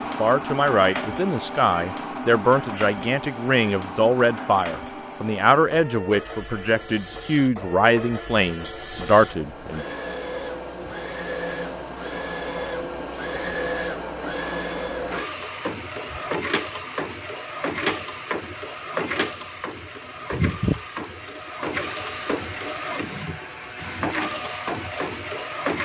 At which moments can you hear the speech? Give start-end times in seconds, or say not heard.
0.1-9.8.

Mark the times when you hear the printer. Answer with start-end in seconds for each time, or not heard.
0.0-25.8.